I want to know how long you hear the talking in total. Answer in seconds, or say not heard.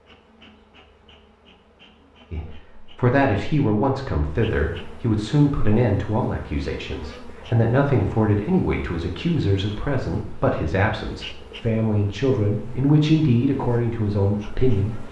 13 s.